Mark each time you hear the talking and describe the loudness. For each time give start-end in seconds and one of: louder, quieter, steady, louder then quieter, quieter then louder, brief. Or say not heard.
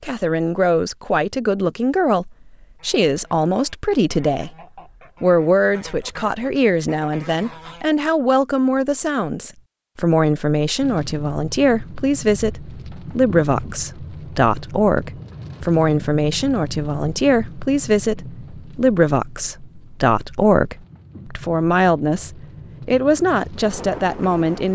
0.0-4.5 steady
5.2-24.7 steady.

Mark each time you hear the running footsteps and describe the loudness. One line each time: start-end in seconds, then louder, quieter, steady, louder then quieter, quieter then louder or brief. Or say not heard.
not heard.